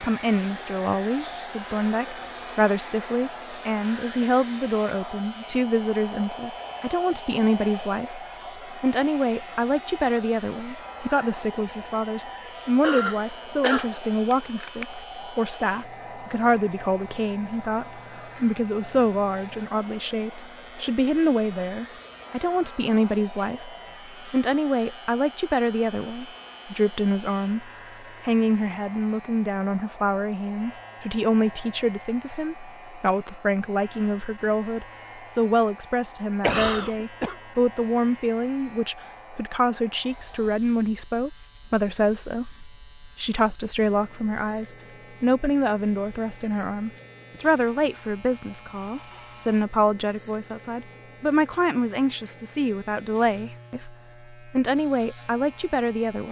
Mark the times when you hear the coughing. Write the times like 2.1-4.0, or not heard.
12.8-14.8, 36.4-37.4.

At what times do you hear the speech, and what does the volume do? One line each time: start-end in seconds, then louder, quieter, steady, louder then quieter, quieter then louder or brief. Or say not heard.
0.0-56.2 steady.